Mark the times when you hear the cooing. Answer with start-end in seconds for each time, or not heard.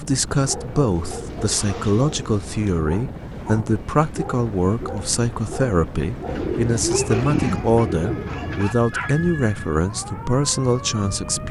1.1-2.2, 6.2-8.7.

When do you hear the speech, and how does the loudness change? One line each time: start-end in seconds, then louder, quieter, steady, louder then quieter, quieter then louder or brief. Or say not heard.
0.0-11.4 steady.